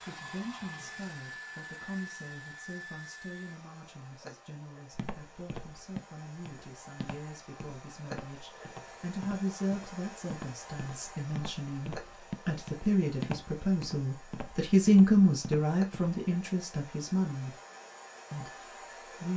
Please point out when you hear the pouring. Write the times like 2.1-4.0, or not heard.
not heard.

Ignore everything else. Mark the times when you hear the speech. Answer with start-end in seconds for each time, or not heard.
0.0-17.6, 18.3-19.3.